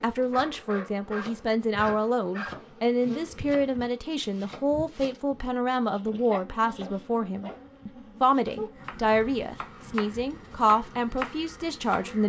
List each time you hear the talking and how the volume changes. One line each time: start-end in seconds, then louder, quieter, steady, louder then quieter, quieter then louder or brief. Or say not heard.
0.0-12.2 steady.